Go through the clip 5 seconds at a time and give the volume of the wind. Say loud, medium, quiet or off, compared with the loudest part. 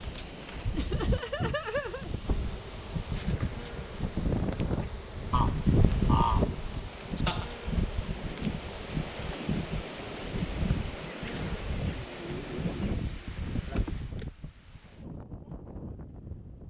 loud, loud, loud, medium.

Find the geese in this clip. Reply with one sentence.
You can hear the geese from 5.3 to 6.6 s.